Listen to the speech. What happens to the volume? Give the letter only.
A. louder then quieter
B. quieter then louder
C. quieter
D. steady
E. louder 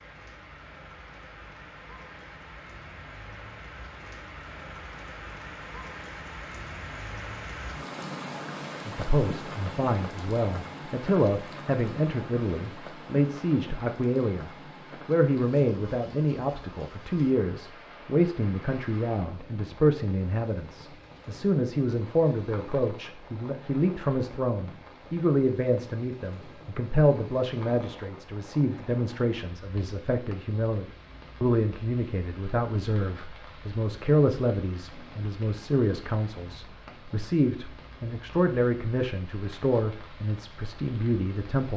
D.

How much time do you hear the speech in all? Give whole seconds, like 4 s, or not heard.
33 s.